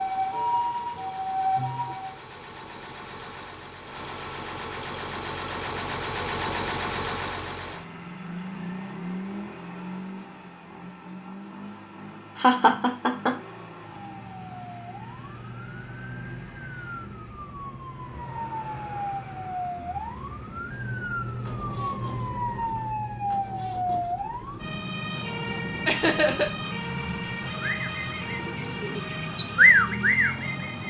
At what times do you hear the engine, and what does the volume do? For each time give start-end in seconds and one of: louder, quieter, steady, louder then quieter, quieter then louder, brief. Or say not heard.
0.0-30.8 quieter.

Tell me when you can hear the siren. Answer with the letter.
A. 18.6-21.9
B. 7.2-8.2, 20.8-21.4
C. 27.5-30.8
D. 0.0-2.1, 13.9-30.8
D.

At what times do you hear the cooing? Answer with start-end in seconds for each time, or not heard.
27.5-30.8.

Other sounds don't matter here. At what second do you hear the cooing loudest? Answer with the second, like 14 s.
30 s.